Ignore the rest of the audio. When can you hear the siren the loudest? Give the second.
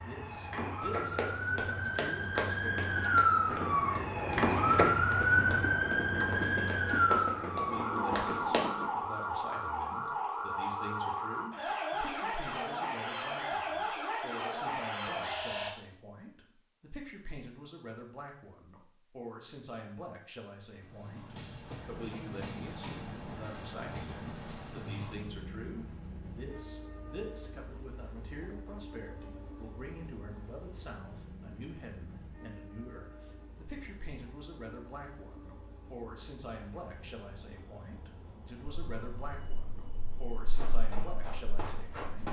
5 s.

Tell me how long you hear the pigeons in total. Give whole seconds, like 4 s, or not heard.
not heard.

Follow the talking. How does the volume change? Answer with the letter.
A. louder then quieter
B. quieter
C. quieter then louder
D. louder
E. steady
E.